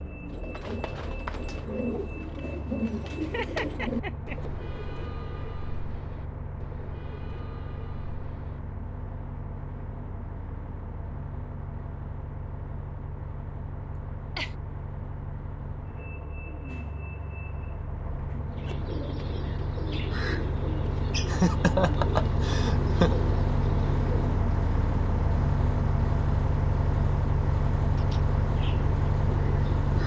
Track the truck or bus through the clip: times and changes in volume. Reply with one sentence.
The truck or bus can be heard from 0.0 to 30.0 s, getting louder.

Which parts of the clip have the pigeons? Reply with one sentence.
You can hear the pigeons from 0.2 to 8.6 s, from 18.6 to 24.2 s and from 27.9 to 30.0 s.